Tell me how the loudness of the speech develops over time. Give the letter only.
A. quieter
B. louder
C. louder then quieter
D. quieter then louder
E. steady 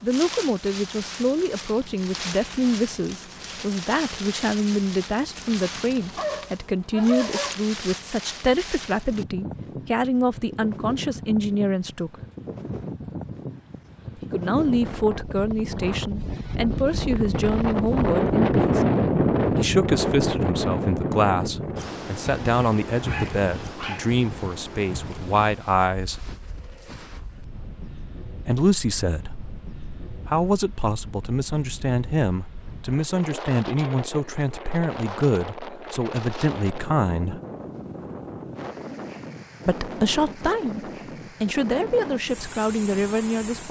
E.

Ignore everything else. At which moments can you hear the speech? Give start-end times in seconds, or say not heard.
0.0-12.2, 14.2-18.8, 19.6-26.3, 28.4-37.4, 39.6-43.6.